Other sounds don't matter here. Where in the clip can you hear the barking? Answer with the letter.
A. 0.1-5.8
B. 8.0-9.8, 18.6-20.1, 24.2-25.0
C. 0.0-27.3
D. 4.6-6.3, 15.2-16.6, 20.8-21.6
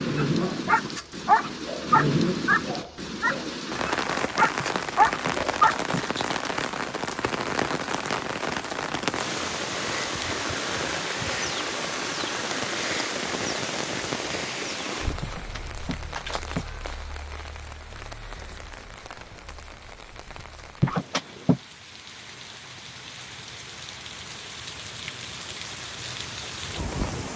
A.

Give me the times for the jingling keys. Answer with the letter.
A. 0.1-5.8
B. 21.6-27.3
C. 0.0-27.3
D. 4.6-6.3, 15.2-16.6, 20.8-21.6
D.